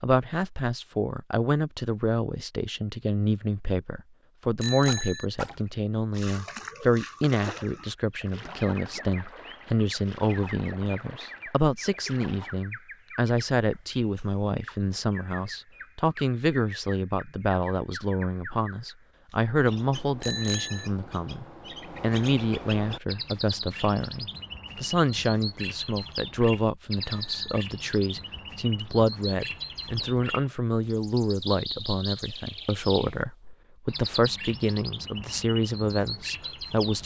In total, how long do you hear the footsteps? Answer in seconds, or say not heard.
not heard.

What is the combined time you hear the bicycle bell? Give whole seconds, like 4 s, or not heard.
2 s.